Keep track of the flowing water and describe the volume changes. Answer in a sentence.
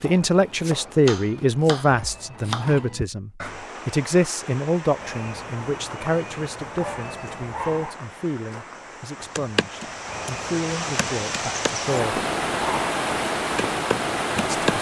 The volume of the flowing water goes up.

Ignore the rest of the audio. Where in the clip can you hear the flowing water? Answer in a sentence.
The flowing water can be heard from 3.4 to 14.7 s.